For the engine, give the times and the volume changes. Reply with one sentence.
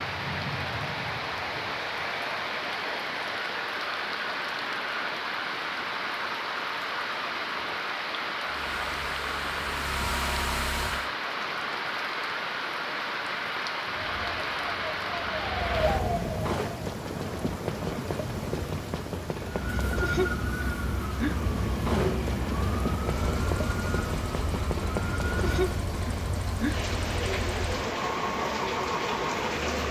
The engine can be heard briefly from 8.4 to 11.1 s; and from 23.1 to 29.8 s, getting louder.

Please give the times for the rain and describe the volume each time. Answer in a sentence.
The rain can be heard from 0.0 to 29.8 s, at a steady volume.